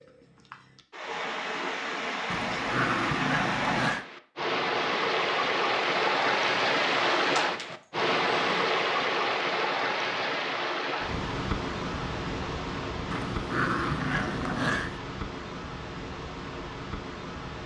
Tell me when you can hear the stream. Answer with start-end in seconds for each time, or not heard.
0.0-17.6.